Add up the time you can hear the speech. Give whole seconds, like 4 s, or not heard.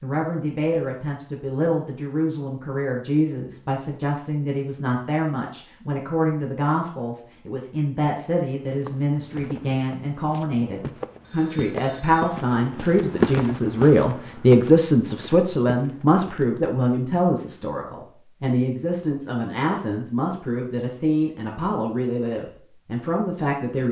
24 s.